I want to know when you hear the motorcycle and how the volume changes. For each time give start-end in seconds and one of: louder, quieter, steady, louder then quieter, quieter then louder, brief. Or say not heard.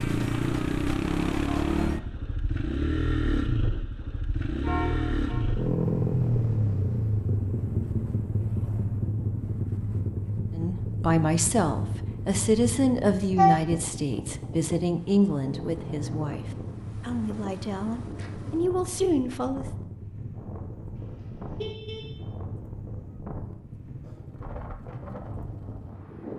0.0-26.3 quieter.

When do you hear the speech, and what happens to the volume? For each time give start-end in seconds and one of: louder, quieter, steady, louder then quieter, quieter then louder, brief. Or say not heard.
10.6-19.6 quieter then louder.